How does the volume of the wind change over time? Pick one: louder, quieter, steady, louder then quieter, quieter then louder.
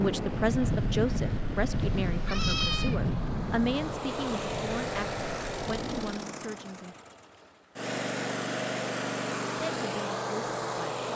quieter.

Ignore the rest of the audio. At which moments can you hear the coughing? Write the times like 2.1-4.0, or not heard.
not heard.